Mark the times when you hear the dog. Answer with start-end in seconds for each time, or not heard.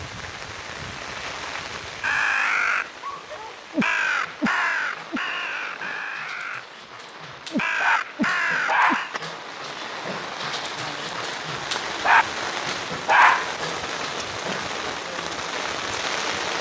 3.0-14.7.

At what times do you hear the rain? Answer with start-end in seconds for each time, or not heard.
0.0-16.5.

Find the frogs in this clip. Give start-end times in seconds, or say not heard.
not heard.